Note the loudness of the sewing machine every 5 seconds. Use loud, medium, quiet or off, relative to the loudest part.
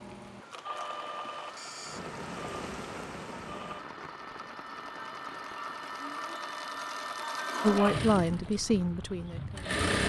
medium, loud.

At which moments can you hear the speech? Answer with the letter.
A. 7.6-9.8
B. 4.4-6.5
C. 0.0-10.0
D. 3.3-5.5
A.